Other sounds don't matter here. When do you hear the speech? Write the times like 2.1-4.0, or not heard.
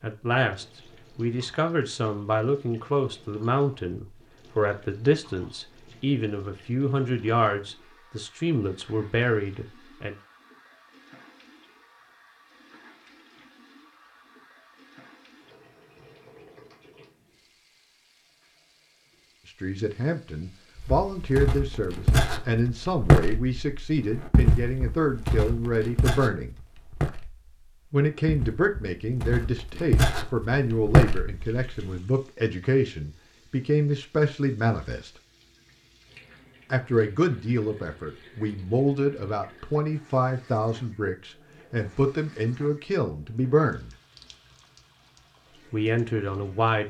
0.0-10.2, 19.4-26.6, 27.9-35.1, 36.7-43.9, 45.7-46.8.